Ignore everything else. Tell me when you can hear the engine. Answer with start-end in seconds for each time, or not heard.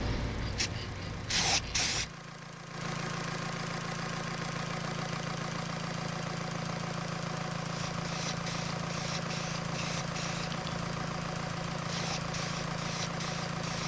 0.0-13.8.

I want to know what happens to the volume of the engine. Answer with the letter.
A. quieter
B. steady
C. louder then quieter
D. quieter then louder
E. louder
E.